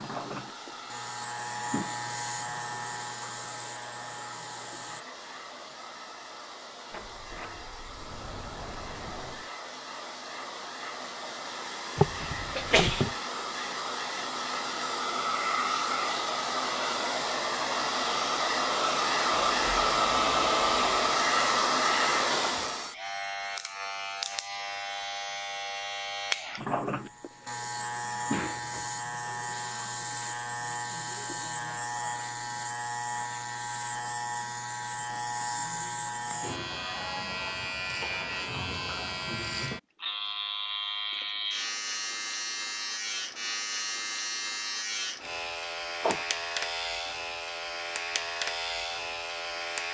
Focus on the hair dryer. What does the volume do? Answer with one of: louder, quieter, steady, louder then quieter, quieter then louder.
louder.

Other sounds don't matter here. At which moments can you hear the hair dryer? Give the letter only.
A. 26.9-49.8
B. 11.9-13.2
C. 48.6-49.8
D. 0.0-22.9
D.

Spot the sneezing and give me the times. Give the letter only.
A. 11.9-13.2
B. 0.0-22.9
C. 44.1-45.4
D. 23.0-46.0
A.